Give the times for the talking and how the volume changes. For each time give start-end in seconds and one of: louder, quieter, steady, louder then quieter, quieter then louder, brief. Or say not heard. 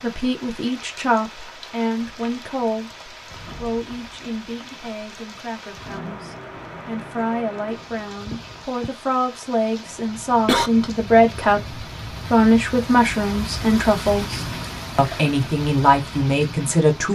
0.0-3.0 brief
3.5-17.1 louder.